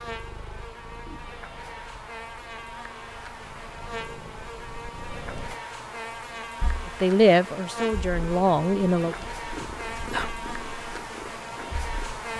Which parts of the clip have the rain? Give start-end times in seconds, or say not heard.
not heard.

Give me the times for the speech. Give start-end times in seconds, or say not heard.
7.0-9.2.